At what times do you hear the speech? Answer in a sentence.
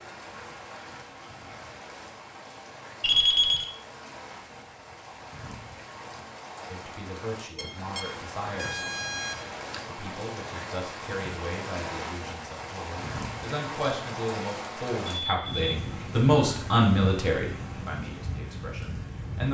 You can hear the speech from 6.7 to 8.8 s and from 9.8 to 19.4 s.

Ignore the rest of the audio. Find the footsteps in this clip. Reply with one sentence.
You can't hear the footsteps here.